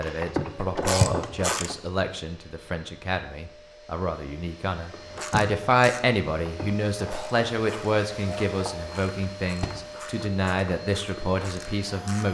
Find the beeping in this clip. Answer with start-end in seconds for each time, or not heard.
not heard.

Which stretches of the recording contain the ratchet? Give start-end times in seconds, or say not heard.
0.0-1.8, 4.9-12.2.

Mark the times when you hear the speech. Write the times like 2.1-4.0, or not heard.
0.0-12.2.